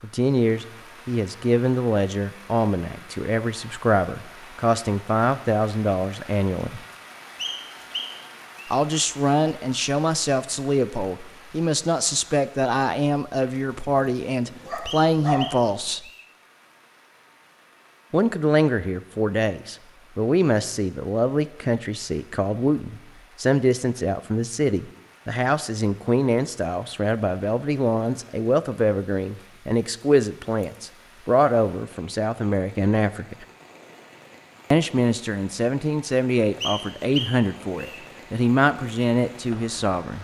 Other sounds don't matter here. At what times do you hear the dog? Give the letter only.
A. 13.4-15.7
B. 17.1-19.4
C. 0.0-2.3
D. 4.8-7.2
A.